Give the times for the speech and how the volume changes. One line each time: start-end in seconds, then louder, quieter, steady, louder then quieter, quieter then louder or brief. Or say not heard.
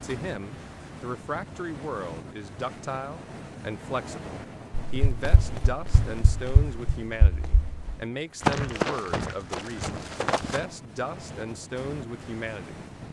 0.0-12.9 steady.